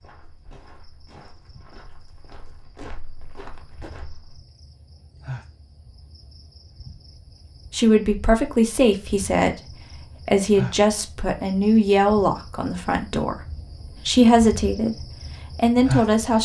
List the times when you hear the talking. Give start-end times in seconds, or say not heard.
7.7-13.3, 13.9-16.3.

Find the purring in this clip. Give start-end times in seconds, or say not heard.
not heard.